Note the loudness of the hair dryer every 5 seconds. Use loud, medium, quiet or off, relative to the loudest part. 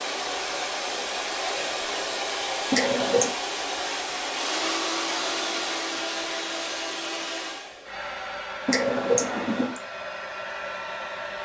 loud, loud, medium.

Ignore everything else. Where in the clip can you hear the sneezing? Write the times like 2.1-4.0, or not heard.
2.7-3.4, 8.7-9.8.